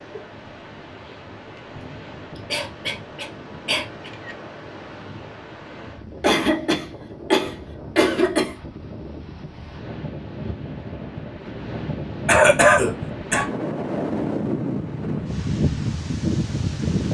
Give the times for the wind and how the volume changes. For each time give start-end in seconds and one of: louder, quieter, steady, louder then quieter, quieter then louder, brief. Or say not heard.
0.0-17.1 louder.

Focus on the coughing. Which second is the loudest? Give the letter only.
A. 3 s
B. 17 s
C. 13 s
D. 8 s
C.